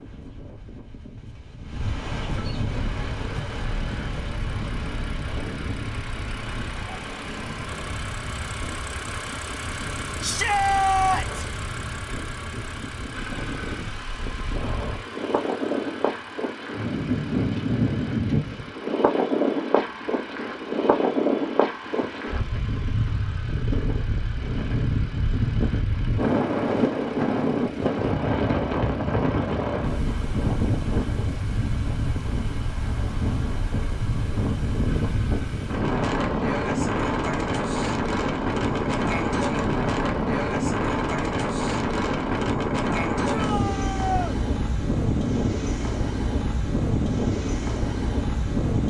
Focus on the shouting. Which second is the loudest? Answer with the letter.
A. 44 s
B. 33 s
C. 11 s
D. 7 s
C.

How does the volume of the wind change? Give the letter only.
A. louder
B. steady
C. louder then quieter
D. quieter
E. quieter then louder
A.